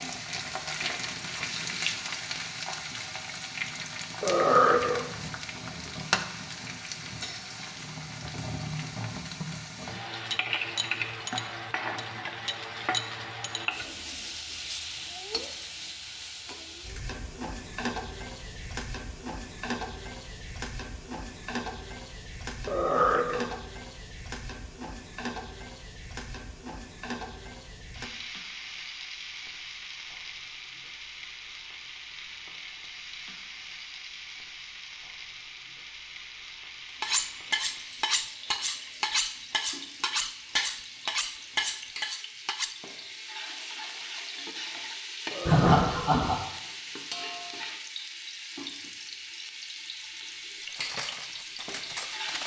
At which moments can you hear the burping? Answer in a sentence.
The burping can be heard from 4.2 to 5.0 s, from 22.6 to 23.5 s and from 45.3 to 46.1 s.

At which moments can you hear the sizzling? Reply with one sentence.
The sizzling can be heard from 0.0 to 52.4 s.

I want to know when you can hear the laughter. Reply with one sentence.
The laughter can be heard from 45.5 to 46.4 s.